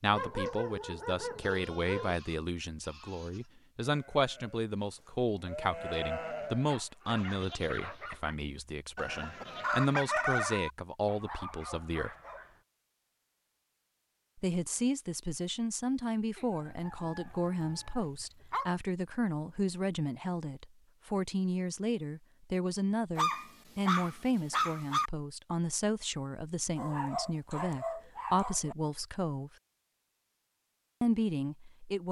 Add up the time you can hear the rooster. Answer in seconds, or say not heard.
3 s.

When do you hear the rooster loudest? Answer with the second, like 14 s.
10 s.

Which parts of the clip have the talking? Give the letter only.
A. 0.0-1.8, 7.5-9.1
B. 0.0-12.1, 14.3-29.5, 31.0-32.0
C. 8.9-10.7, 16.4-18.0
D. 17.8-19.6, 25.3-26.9
B.